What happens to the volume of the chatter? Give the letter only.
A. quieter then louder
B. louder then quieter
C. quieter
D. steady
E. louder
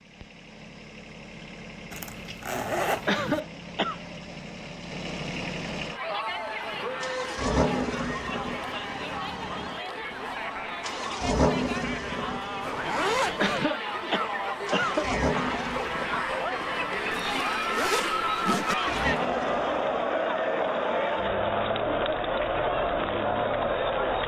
E.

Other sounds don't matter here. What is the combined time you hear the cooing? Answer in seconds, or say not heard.
not heard.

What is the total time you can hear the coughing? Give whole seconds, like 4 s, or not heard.
3 s.